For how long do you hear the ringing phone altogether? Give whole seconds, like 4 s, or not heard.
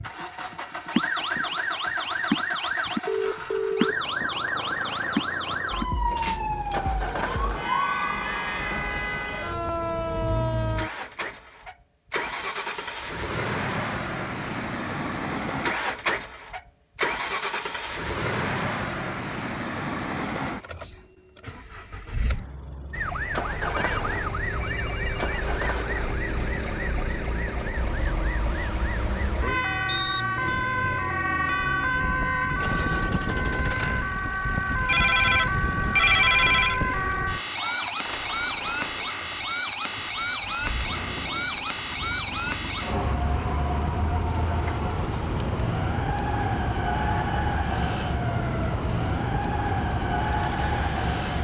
5 s.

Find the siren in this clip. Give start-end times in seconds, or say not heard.
0.0-10.9, 22.9-51.3.